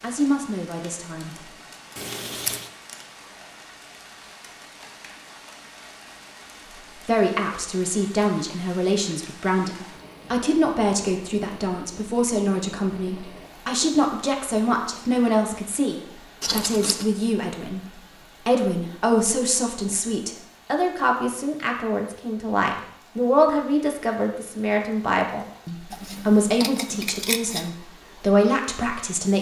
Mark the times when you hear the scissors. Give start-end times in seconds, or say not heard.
1.9-2.7, 16.4-17.1, 25.9-27.7.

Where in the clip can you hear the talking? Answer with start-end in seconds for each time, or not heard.
0.0-1.4, 7.0-29.3.